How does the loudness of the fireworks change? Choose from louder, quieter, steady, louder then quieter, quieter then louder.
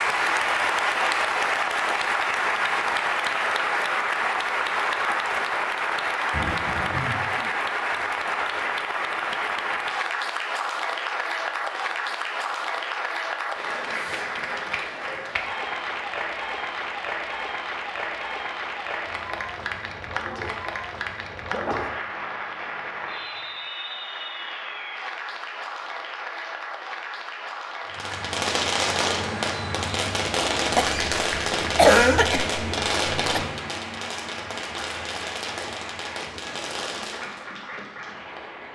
quieter.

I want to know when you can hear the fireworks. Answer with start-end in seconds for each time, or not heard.
27.9-37.5.